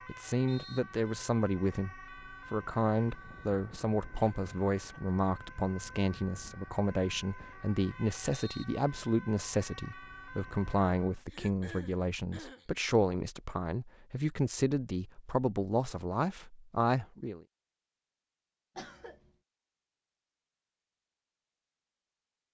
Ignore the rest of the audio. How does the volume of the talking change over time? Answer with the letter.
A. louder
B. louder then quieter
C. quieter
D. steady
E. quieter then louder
D.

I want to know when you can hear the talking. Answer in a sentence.
You can hear the talking from 0.1 to 17.4 s.